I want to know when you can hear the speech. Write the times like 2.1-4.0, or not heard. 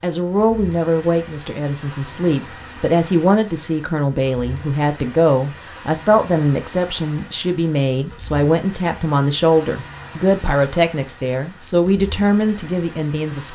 0.0-13.5.